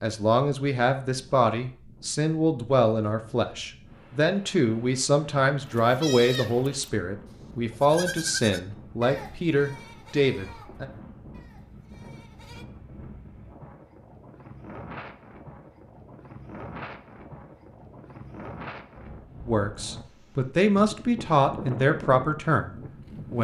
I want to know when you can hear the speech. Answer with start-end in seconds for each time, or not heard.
0.0-10.8, 19.4-23.3.